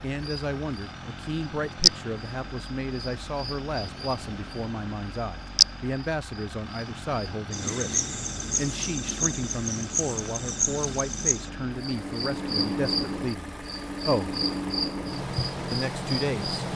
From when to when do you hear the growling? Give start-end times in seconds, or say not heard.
not heard.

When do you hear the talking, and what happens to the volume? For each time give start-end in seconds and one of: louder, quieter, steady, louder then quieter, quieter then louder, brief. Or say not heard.
0.0-14.3 steady
15.7-16.6 brief.